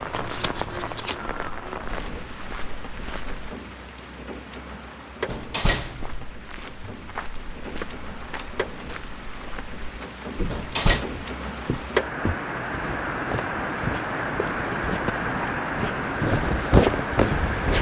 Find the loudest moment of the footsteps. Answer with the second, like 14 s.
17 s.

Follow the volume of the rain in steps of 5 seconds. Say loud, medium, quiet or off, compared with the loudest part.
medium, medium, loud, loud.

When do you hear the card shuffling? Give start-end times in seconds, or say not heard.
0.1-1.2.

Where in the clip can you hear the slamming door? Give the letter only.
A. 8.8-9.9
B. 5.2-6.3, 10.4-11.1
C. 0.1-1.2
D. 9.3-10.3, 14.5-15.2
B.